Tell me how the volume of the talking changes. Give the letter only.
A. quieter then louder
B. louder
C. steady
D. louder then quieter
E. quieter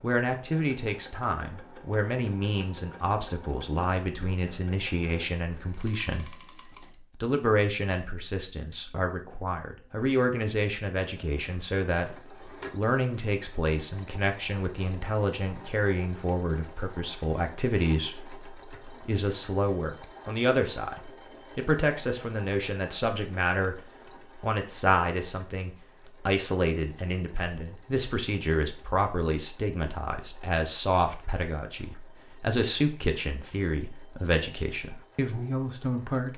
C.